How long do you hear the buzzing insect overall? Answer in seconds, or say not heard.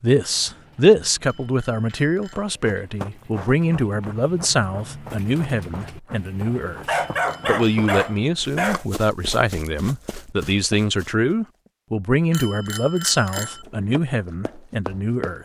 not heard.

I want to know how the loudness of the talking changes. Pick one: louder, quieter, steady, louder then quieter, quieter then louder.
steady.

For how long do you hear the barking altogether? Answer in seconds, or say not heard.
2 s.